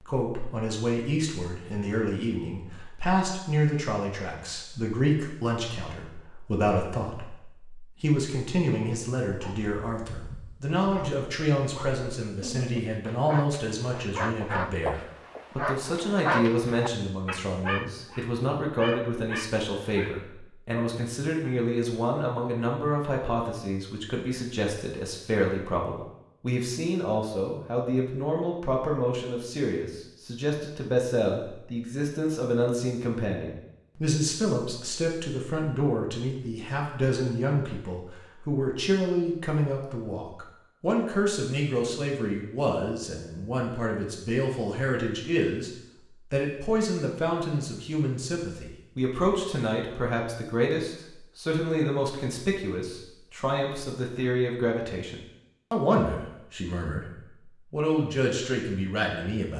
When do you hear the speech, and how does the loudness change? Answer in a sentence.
You can hear the speech from 0.0 to 45.7 s, at a steady volume; from 46.3 to 57.0 s, at a steady volume; and briefly from 57.7 to 59.5 s.